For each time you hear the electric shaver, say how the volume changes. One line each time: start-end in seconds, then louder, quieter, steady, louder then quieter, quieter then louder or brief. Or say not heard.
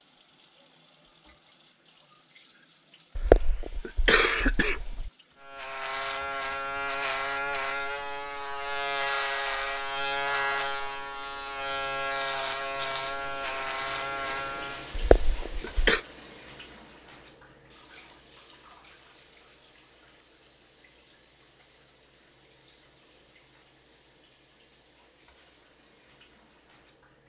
5.4-14.9 steady.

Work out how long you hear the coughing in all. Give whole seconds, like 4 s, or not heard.
3 s.